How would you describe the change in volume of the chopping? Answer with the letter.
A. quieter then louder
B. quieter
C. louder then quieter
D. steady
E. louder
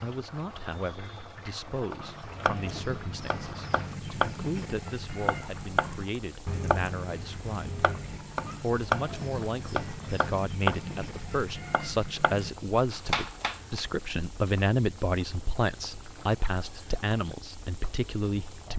D.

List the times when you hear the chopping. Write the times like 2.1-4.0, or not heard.
1.9-13.8.